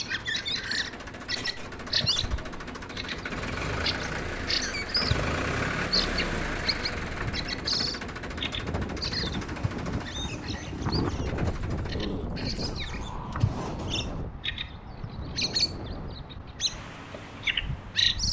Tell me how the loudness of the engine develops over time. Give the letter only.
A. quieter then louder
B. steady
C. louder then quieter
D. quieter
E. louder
C.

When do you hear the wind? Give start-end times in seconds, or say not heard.
6.9-18.2.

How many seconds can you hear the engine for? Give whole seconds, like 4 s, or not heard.
14 s.